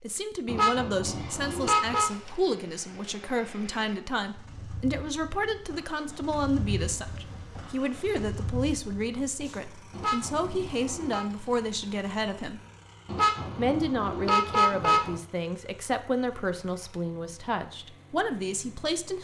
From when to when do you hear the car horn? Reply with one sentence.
The car horn can be heard from 0.5 to 2.1 s, from 9.9 to 11.2 s and from 13.1 to 15.2 s.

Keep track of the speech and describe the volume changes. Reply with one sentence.
The loudness of the speech stays about the same.